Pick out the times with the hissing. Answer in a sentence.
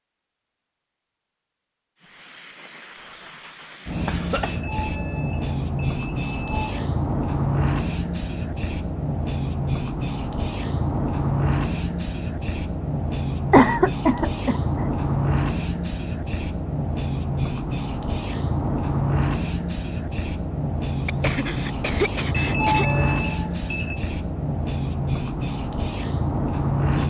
The hissing can be heard from 2.0 to 27.0 s.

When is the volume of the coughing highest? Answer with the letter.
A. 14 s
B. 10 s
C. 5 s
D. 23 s
A.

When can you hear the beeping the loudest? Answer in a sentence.
The volume of the beeping peaks at 23 seconds.